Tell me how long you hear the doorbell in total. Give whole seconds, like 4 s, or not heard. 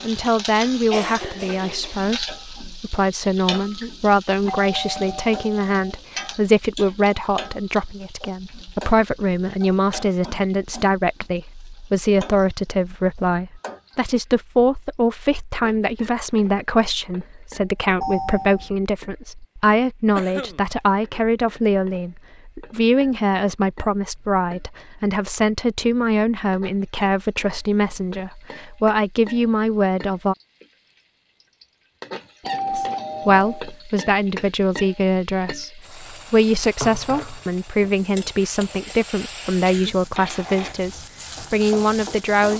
3 s.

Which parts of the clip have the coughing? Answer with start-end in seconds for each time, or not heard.
0.9-2.0, 20.1-20.6, 39.6-40.5.